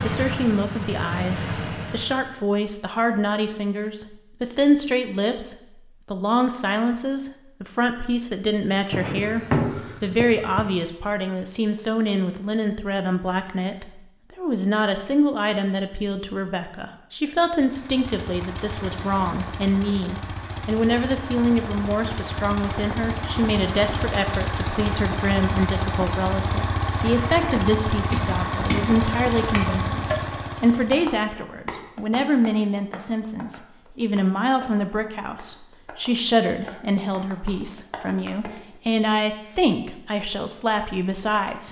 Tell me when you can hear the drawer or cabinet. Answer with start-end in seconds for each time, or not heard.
8.9-10.7.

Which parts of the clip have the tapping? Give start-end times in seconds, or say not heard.
28.1-38.6.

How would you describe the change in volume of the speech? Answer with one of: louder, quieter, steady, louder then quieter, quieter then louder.
steady.